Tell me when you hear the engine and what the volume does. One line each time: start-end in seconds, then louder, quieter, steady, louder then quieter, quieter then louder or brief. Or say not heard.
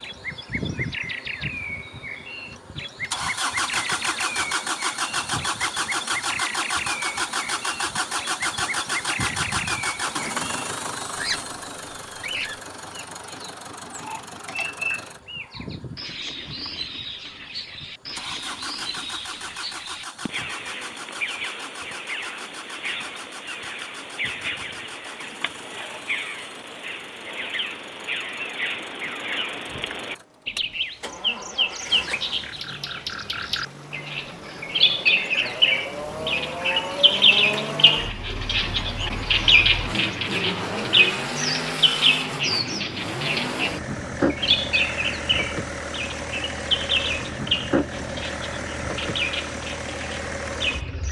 0.0-51.0 quieter then louder.